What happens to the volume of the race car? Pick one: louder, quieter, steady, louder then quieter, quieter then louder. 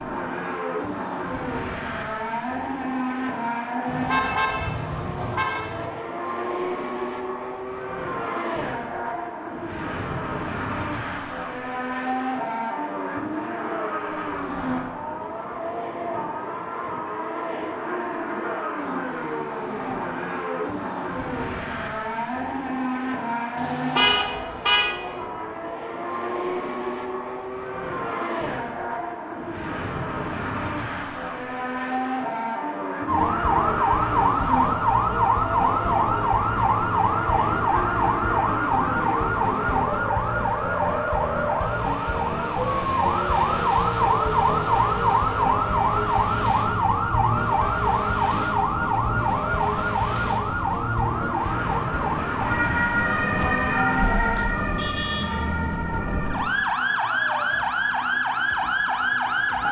steady.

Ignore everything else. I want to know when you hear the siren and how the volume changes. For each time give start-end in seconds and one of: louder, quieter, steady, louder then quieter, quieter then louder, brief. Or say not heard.
33.0-59.6 steady.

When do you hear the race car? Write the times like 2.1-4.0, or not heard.
0.0-54.4.